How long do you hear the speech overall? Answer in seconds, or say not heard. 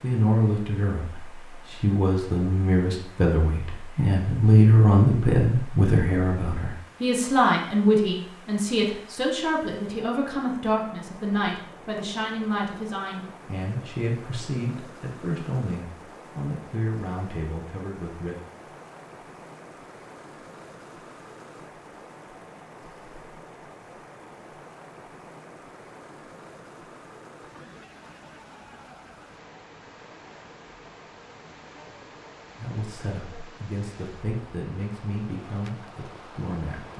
23 s.